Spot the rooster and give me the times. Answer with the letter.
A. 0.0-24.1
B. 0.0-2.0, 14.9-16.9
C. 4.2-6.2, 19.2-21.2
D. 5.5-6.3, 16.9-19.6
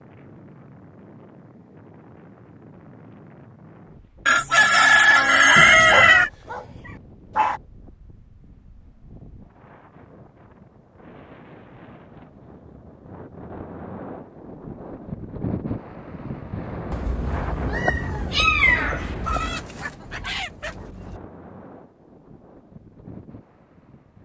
C.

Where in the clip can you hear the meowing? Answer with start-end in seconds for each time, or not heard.
5.5-6.3, 16.9-19.6.